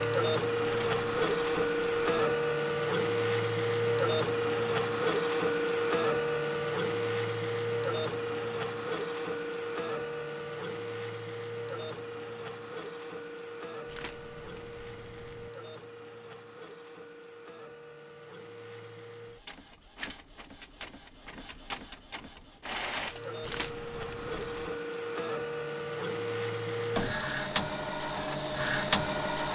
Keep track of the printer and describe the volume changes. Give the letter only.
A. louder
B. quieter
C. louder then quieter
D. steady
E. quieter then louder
E.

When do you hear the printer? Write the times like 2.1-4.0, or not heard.
0.0-29.5.